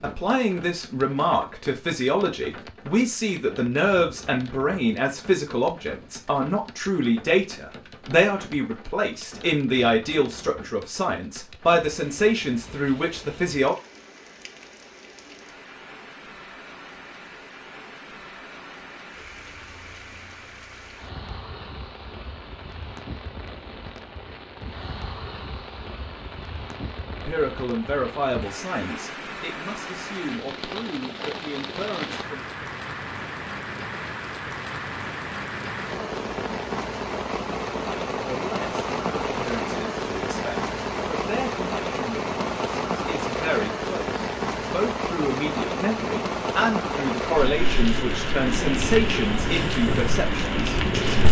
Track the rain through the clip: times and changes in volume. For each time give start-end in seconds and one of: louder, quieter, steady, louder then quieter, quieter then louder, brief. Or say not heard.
0.0-51.2 louder.